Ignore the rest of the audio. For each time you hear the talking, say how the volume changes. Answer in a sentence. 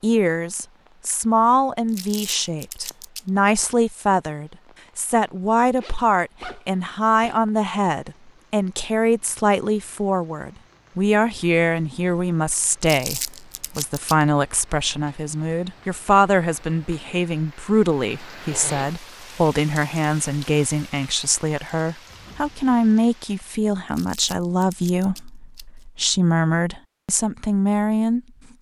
The talking can be heard from 0.0 to 28.5 s, at a steady volume.